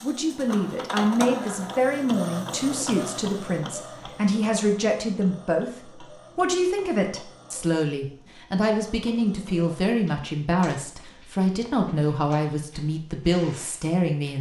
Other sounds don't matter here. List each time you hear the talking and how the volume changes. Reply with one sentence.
You can hear the talking from 0.0 to 14.3 s, at a steady volume.